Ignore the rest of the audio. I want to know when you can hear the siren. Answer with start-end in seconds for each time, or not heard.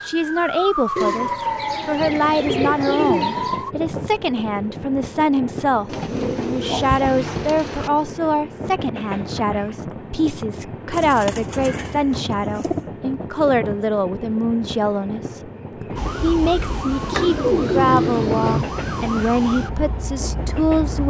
0.0-3.8, 15.9-21.0.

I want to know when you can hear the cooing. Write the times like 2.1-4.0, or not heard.
0.9-3.6, 5.8-7.9, 10.9-12.8, 17.1-18.6.